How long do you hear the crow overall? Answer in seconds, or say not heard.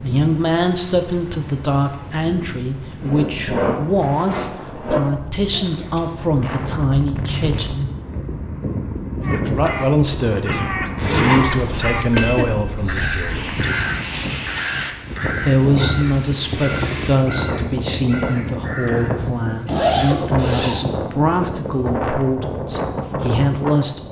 9 s.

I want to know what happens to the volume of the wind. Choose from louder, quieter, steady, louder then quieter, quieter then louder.
louder.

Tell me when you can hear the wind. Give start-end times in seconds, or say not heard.
0.0-24.0.